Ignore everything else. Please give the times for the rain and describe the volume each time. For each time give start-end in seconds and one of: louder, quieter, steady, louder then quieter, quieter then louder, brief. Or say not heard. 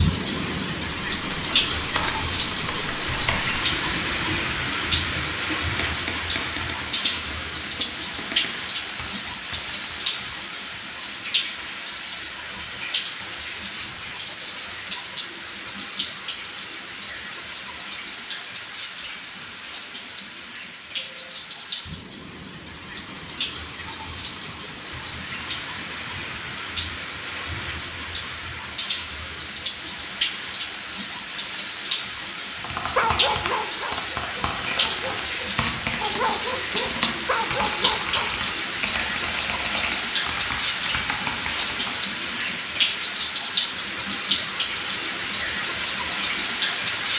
0.0-47.1 quieter then louder.